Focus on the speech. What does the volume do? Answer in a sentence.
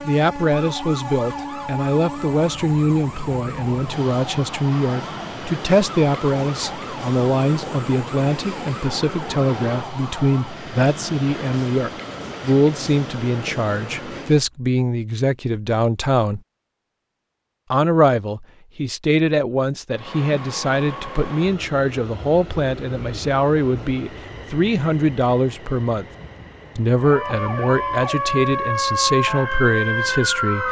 The loudness of the speech stays about the same.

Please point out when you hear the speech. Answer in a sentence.
You can hear the speech from 0.0 to 16.4 s, from 17.7 to 26.1 s and from 26.8 to 30.6 s.